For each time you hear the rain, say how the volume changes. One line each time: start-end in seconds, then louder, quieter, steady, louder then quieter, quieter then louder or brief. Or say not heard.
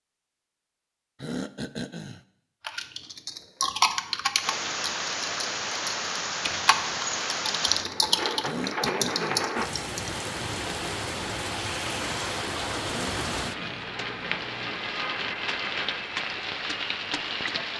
4.3-17.7 steady.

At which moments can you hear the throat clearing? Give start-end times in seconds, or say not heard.
1.2-2.2, 8.4-9.4, 12.8-13.9.